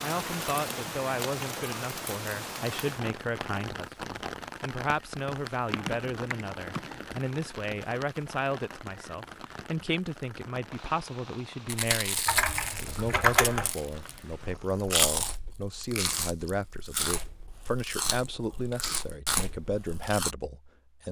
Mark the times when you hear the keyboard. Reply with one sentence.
The keyboard can be heard from 5.7 to 7.2 s and from 12.2 to 13.7 s.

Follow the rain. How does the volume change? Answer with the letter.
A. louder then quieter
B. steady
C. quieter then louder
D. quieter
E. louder
D.